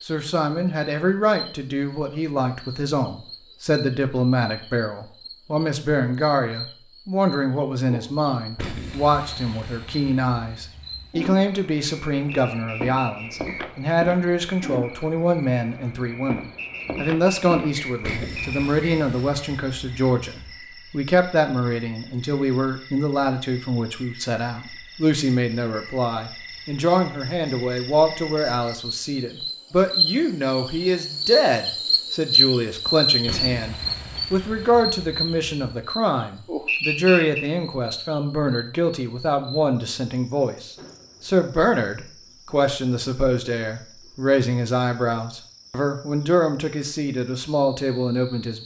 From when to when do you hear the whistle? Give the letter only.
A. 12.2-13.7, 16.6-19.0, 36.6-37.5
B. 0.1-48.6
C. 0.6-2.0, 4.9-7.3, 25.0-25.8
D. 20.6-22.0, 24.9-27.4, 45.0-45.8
A.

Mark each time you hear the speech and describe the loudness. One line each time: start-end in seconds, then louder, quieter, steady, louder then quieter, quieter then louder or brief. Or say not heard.
0.1-48.6 steady.